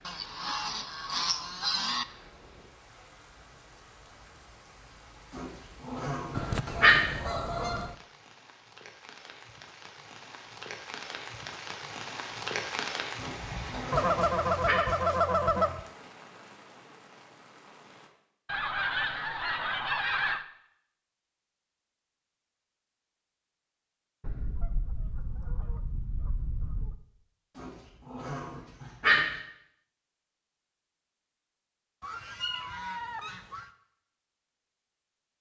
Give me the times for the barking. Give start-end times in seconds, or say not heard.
5.3-7.1, 13.2-14.8, 27.6-29.3.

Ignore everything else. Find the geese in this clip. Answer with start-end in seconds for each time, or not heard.
0.1-2.0, 6.3-8.0, 13.9-15.8, 18.4-20.4, 24.2-26.9, 32.0-33.7.